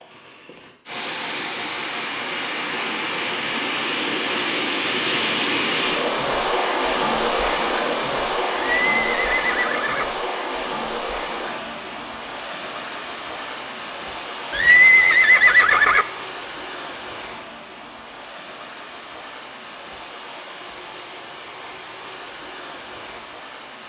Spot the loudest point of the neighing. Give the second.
15 s.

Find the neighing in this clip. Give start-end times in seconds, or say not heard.
8.6-10.1, 14.5-16.1.